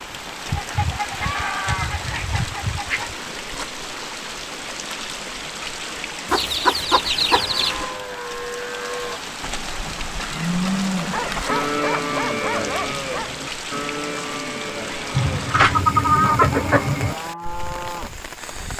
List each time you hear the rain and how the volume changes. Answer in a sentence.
You can hear the rain from 0.0 to 18.7 s, at a steady volume.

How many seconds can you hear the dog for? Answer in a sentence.
The dog can be heard for 2 seconds in total.